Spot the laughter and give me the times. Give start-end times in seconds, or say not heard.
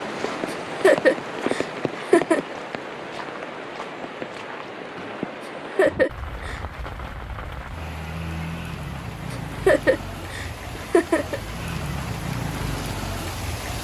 0.5-2.5, 5.4-6.7, 9.3-11.4.